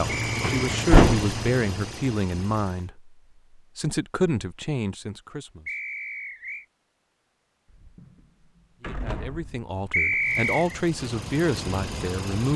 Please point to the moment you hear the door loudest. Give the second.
1 s.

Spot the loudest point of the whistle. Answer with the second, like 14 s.
10 s.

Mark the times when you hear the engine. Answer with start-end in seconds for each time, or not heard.
0.0-2.9, 10.2-12.5.